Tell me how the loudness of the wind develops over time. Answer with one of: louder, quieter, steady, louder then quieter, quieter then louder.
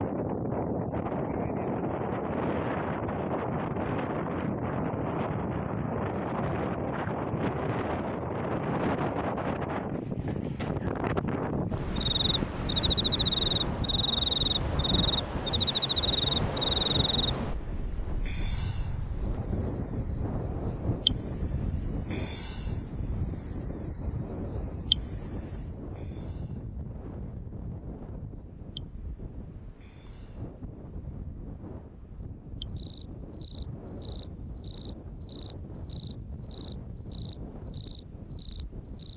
quieter.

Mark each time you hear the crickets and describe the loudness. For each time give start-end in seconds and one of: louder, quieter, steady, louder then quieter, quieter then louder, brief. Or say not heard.
11.9-39.1 quieter.